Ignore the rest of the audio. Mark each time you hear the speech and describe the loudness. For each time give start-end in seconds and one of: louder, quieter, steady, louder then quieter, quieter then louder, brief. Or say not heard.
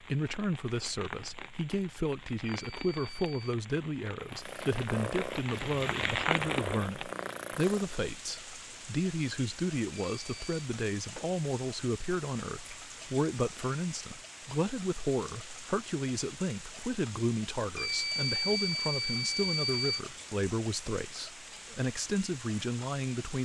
0.0-23.4 steady.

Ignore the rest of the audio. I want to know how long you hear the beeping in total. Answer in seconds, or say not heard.
4 s.